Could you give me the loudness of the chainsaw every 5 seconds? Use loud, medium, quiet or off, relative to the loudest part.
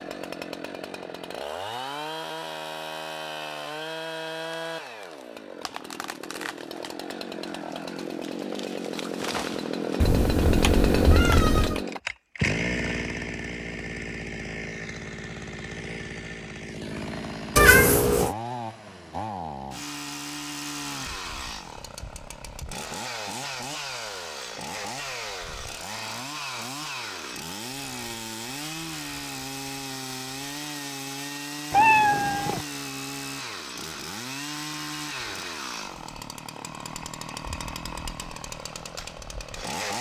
medium, medium, loud, medium, medium, medium, medium, medium.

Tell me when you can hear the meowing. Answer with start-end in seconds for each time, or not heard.
10.0-11.8, 17.6-18.3, 31.7-32.6.